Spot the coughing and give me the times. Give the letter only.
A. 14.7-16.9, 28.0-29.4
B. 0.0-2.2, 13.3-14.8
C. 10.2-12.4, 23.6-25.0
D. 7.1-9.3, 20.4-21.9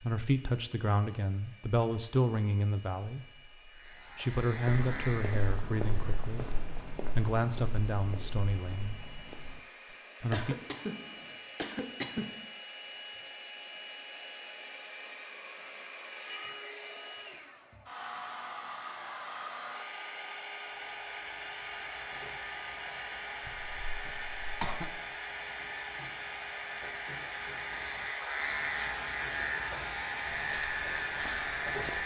C.